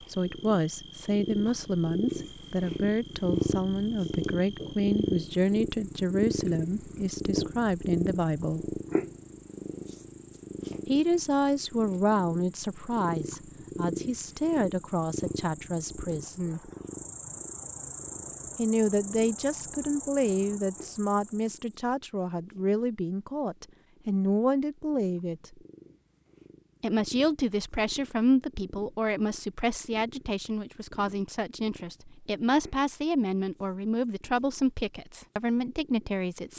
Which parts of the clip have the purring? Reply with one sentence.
The purring can be heard from 0.1 to 36.5 s.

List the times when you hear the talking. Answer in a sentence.
The talking can be heard from 0.1 to 8.8 s, from 10.8 to 16.7 s, from 18.6 to 25.6 s and from 26.8 to 36.5 s.